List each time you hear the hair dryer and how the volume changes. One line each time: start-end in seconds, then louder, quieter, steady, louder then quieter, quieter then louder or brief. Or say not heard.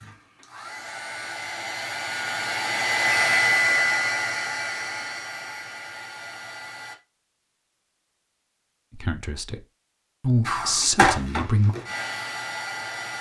0.0-7.0 louder then quieter
10.4-13.1 brief.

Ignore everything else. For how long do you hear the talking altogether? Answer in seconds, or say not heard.
2 s.